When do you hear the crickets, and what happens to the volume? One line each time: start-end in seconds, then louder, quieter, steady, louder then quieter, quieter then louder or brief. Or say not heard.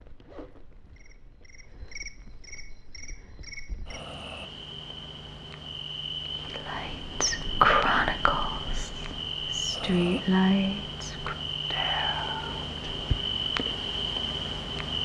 0.0-15.0 louder.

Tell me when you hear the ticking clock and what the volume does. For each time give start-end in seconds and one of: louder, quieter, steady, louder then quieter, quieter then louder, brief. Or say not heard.
not heard.